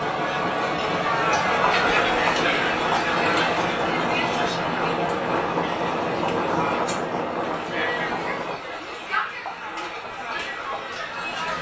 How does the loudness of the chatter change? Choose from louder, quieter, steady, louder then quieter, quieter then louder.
quieter.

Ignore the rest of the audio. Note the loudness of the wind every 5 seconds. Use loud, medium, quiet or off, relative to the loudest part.
loud, loud, off.